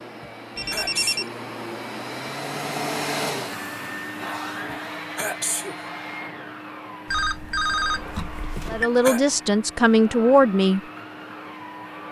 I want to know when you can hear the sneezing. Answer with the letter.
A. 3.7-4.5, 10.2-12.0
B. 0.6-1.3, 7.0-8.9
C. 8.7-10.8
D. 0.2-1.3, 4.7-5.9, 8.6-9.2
D.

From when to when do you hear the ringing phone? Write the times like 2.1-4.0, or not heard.
0.6-1.3, 7.0-8.9.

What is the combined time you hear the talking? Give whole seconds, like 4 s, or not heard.
2 s.